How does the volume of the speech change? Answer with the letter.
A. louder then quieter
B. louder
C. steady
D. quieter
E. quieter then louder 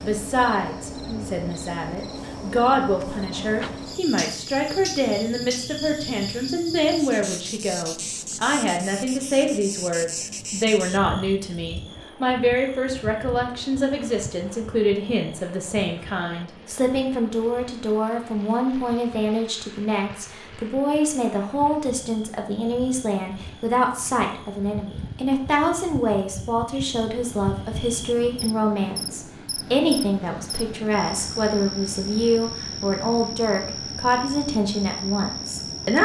C.